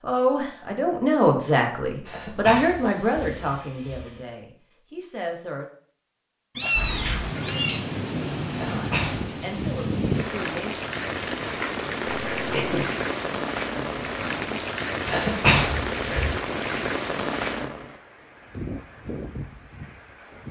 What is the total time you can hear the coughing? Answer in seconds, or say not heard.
4 s.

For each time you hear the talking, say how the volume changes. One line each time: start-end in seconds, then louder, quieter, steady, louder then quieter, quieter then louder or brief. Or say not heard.
0.0-5.7 quieter
8.6-11.1 brief.